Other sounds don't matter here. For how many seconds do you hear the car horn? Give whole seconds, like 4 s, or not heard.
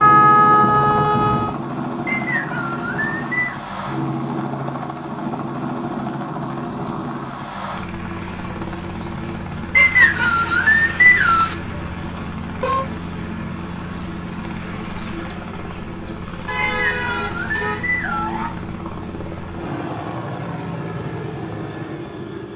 4 s.